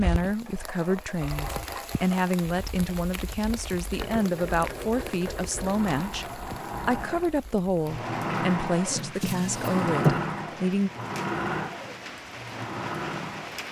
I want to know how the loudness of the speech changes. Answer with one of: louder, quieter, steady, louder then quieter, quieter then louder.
steady.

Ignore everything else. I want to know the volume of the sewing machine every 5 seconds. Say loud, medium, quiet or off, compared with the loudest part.
medium, loud, loud.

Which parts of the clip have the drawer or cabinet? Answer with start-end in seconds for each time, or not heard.
8.9-10.2.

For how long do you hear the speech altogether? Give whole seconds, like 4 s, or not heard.
11 s.